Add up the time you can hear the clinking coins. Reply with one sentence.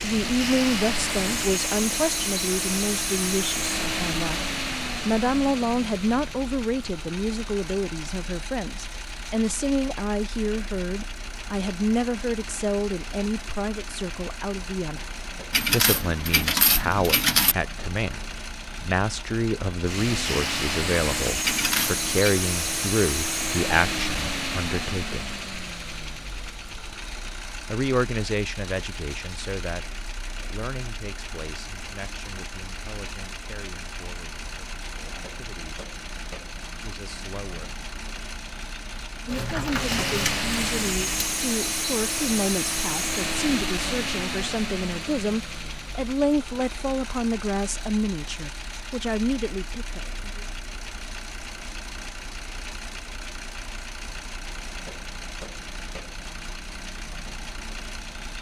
The clinking coins can be heard for 5 seconds in total.